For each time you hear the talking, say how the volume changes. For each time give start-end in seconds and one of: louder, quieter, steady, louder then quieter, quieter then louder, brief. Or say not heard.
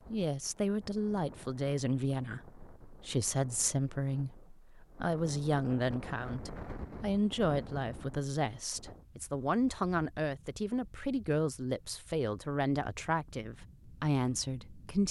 0.1-15.0 steady.